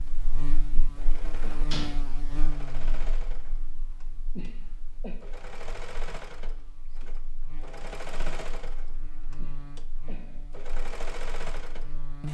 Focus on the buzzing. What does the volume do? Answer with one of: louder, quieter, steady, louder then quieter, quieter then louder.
quieter then louder.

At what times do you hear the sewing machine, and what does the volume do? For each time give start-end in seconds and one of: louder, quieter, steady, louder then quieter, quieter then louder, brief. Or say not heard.
0.0-12.2 louder.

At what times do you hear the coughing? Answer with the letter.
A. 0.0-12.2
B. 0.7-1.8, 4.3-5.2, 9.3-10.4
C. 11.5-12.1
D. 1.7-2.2
B.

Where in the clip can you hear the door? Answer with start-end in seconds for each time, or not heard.
1.7-2.2.